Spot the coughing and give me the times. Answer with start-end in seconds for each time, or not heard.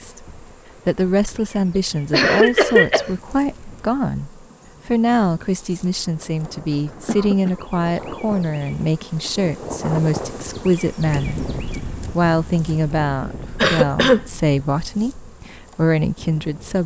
1.8-3.1, 7.0-7.6, 13.6-14.2.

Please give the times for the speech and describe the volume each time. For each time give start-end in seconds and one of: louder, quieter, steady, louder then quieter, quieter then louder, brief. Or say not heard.
0.0-16.8 steady.